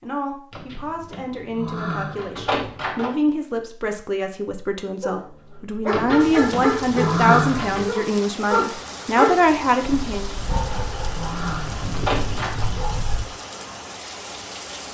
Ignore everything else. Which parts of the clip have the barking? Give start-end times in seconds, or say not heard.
5.0-13.2.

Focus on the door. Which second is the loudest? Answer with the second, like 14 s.
7 s.